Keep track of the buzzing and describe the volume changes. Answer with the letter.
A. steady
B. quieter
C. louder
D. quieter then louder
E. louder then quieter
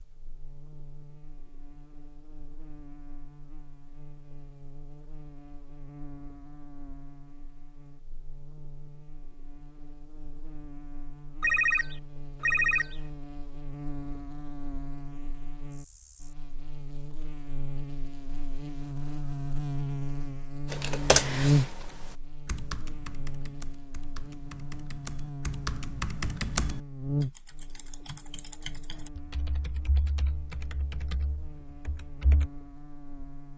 E.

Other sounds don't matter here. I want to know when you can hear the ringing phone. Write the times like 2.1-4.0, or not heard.
11.4-13.1.